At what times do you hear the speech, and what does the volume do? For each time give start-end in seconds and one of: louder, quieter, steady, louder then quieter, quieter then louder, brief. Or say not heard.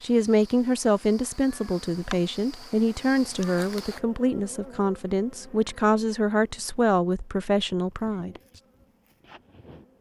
0.0-8.3 steady.